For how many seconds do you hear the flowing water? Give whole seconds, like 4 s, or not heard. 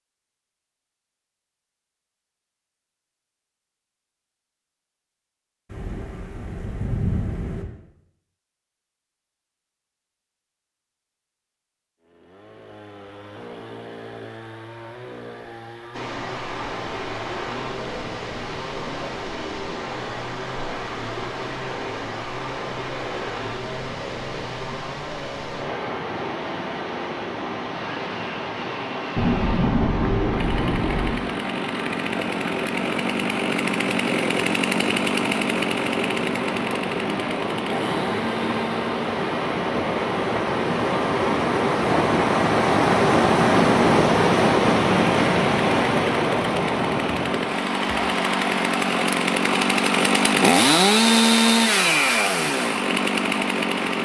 38 s.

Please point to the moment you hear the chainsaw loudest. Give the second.
51 s.